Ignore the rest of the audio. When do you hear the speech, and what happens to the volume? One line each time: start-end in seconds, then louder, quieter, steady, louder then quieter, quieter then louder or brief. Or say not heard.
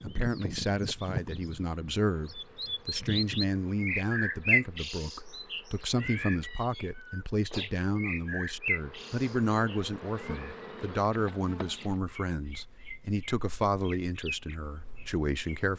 0.0-15.7 steady.